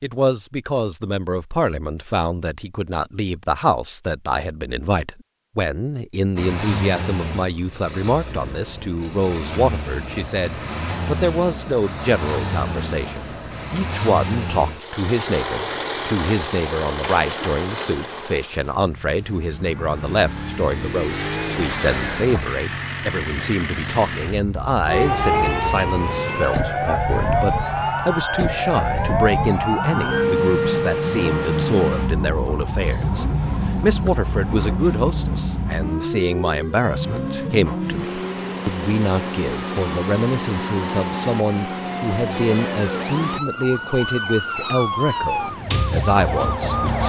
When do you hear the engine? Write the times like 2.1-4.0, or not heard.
6.3-43.4.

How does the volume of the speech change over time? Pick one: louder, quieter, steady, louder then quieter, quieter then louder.
steady.